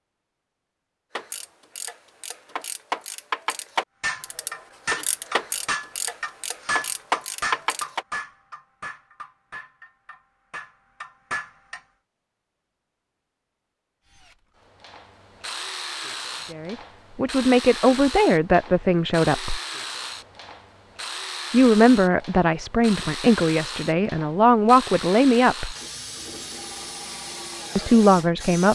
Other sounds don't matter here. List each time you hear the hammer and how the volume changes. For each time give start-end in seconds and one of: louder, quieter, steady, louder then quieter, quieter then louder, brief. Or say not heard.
4.0-11.8 quieter then louder.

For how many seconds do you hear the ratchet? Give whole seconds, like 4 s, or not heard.
7 s.